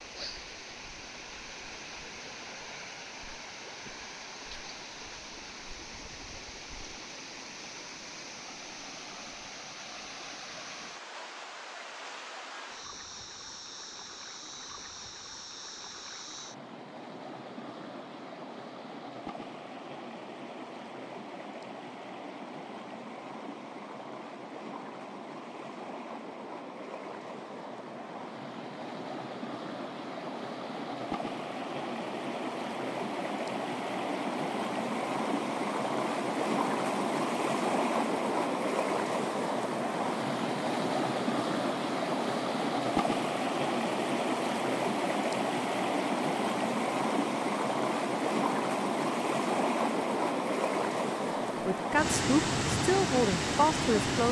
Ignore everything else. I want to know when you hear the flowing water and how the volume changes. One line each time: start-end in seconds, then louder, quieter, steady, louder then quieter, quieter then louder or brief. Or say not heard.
0.0-54.2 louder.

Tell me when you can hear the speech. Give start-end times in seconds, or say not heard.
51.6-54.2.